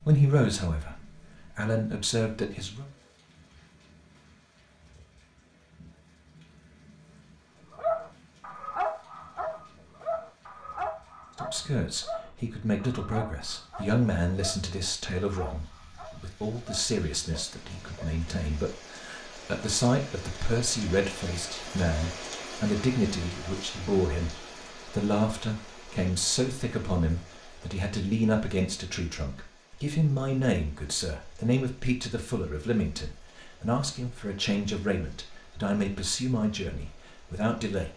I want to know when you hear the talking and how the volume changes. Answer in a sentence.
You can hear the talking briefly from 0.0 to 2.9 s; and from 11.3 to 37.9 s, at a steady volume.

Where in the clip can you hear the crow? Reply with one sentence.
The crow can't be heard in this clip.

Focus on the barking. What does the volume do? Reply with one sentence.
The volume of the barking goes down.